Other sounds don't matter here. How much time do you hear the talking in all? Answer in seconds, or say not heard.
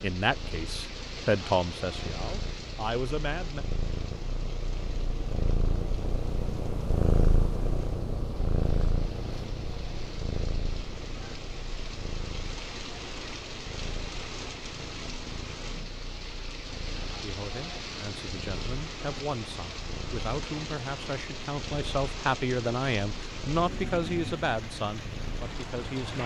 13 s.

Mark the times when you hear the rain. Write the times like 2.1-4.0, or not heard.
0.0-26.2.